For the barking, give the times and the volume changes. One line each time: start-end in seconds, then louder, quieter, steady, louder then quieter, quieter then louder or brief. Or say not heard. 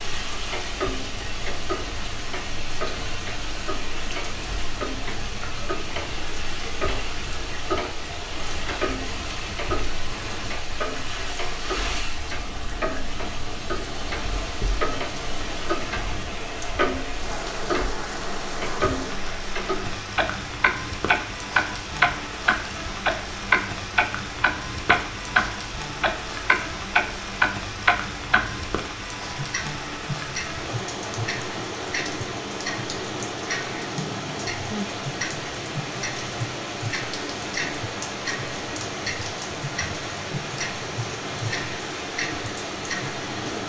not heard.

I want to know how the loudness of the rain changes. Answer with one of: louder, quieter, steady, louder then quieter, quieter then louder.
steady.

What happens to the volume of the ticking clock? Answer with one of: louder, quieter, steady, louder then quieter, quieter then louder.
louder then quieter.